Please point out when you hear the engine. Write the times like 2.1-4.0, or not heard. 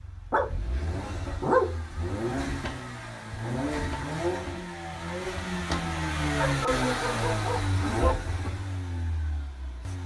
0.0-10.0.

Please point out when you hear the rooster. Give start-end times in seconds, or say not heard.
not heard.